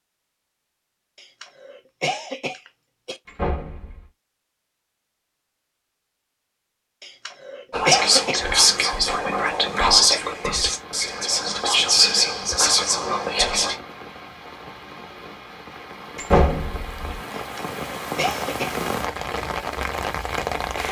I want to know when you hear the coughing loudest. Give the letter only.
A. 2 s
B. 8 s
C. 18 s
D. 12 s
B.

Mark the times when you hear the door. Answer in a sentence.
The door can be heard from 3.2 to 4.0 s, from 9.1 to 9.9 s and from 16.1 to 17.1 s.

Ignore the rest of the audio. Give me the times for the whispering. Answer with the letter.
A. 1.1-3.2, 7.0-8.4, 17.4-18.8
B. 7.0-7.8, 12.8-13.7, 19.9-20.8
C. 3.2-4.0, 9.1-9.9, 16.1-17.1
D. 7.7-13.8
D.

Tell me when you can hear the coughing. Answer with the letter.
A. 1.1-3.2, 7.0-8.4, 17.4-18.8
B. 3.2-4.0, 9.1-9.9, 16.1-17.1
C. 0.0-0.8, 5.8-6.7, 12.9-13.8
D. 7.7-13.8
A.